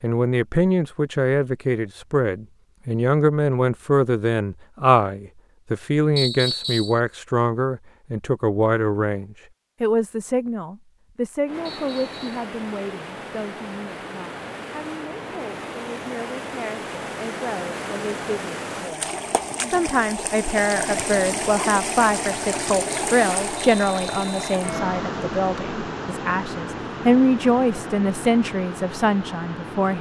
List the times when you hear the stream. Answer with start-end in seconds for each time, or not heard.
11.4-29.9.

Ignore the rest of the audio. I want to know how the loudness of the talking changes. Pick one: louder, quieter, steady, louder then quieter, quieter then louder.
quieter then louder.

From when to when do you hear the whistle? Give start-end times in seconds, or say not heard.
6.2-7.0, 11.7-12.4, 23.6-24.6.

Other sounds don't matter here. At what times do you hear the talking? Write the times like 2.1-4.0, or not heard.
0.0-29.9.